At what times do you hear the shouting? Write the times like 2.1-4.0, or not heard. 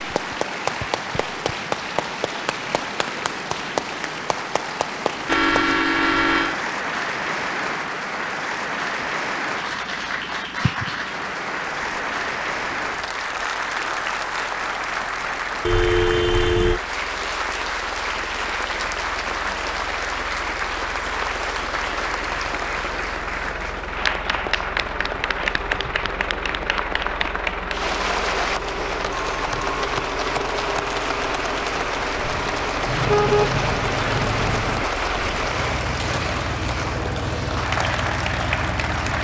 not heard.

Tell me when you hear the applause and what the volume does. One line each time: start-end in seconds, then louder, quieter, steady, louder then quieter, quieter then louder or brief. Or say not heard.
0.0-39.1 steady.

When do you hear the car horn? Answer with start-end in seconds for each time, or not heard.
5.2-6.6, 15.7-16.8, 32.9-34.9.